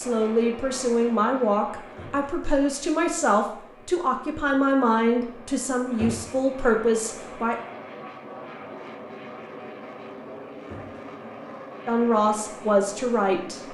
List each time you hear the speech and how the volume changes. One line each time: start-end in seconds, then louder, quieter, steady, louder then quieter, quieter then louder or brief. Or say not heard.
0.0-7.5 steady
11.8-13.6 brief.